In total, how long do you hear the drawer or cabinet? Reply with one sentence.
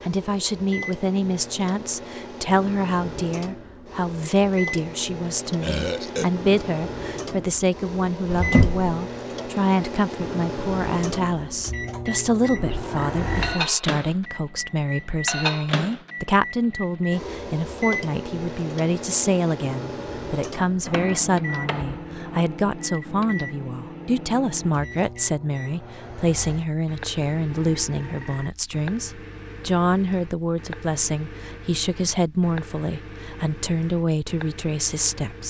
The drawer or cabinet can be heard for 2 seconds in total.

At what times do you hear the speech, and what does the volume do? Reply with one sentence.
The speech can be heard from 0.0 to 35.4 s, at a steady volume.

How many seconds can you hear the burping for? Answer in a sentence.
The burping can be heard for 3 seconds in total.